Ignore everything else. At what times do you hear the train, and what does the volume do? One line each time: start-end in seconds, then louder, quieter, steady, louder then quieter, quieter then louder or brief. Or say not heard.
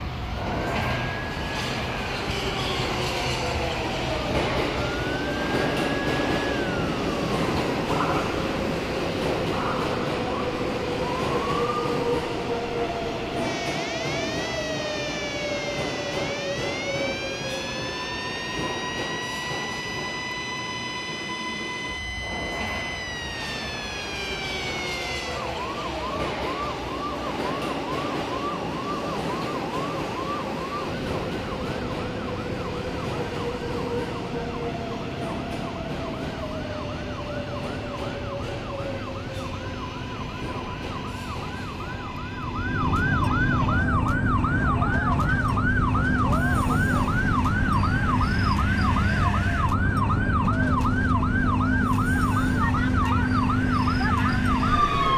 0.0-55.1 quieter.